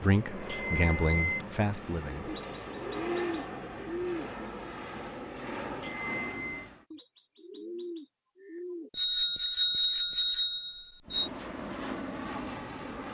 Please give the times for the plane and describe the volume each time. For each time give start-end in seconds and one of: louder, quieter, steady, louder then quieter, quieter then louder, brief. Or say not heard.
0.0-6.8 steady
11.1-13.0 brief.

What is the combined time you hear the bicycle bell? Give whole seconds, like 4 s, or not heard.
4 s.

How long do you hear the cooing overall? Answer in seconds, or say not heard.
4 s.